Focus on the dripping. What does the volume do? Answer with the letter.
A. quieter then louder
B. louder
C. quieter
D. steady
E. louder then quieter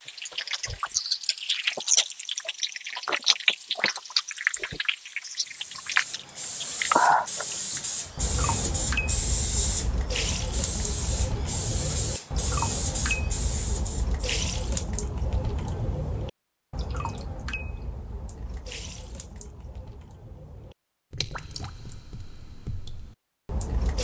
C.